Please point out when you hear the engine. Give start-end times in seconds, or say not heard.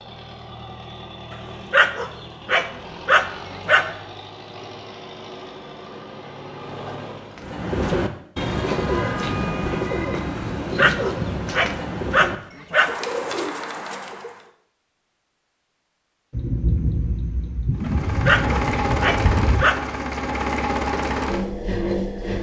0.0-7.5, 17.8-22.3.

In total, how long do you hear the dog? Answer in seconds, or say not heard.
7 s.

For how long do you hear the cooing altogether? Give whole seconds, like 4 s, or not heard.
7 s.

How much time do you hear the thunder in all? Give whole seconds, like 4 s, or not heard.
3 s.